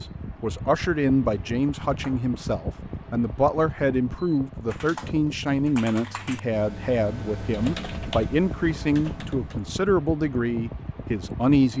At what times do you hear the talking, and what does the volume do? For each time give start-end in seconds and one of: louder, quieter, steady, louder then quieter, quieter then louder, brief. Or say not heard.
0.0-11.7 steady.